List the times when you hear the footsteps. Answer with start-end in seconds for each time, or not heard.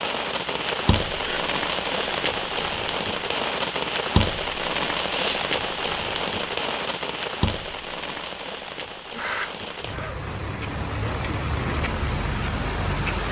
not heard.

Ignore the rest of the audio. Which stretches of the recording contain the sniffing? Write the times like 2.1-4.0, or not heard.
1.1-2.2, 5.0-5.5, 9.1-10.2.